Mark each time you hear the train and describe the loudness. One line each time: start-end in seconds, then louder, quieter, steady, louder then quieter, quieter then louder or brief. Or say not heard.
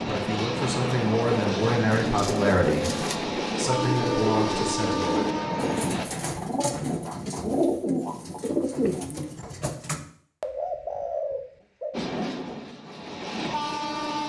0.0-6.0 steady
11.9-14.2 brief.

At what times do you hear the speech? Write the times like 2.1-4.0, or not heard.
0.1-5.2.